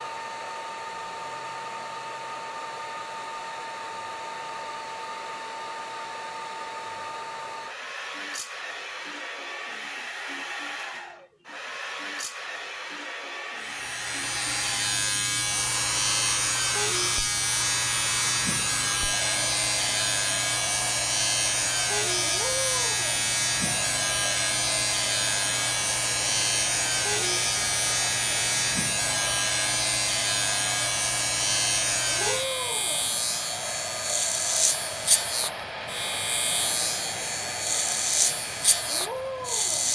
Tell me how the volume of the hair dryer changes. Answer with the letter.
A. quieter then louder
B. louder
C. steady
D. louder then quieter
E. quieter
C.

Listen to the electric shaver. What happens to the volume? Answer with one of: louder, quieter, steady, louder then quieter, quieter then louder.
steady.